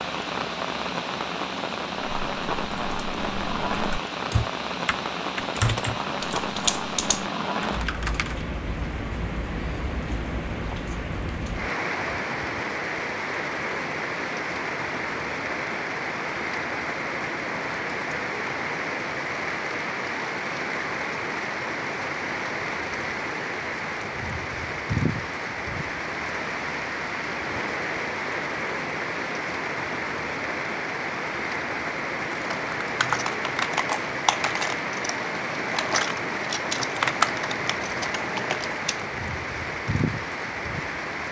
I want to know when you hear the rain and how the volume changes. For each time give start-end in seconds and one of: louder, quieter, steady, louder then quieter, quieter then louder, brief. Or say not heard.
0.0-41.2 steady.